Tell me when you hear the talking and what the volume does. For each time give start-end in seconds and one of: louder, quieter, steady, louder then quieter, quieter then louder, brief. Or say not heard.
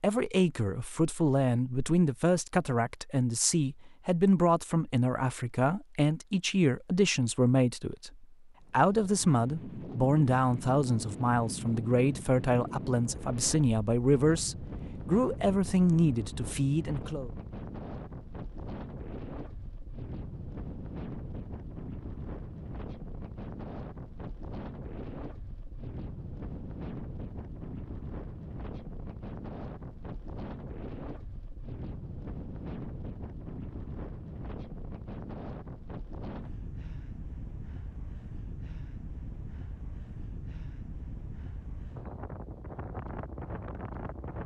0.0-17.3 steady.